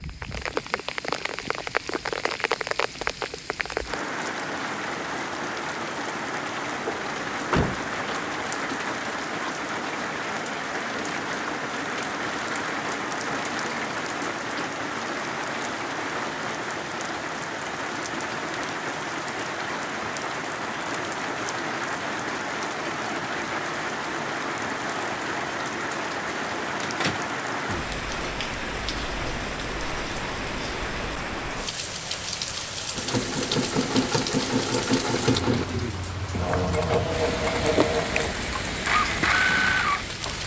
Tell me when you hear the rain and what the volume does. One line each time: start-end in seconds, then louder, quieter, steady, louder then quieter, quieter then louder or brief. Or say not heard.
0.0-40.4 steady.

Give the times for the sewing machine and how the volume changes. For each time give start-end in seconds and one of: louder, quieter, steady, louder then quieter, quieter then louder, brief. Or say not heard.
33.0-40.4 steady.